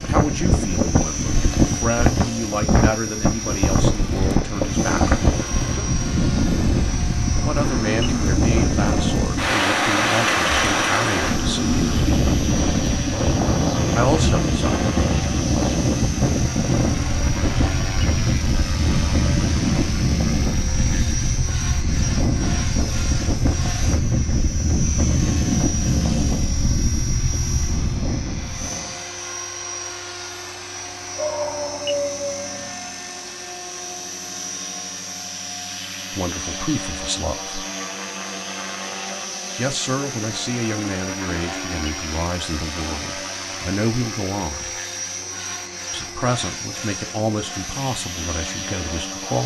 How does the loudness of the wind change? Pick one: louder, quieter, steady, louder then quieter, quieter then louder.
steady.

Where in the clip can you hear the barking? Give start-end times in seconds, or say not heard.
31.1-32.8.